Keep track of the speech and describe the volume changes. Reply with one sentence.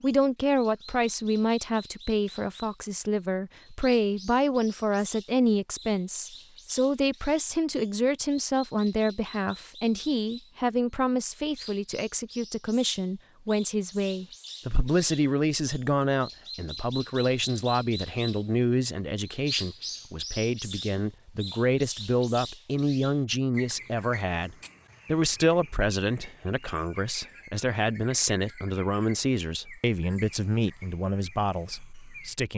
The loudness of the speech stays about the same.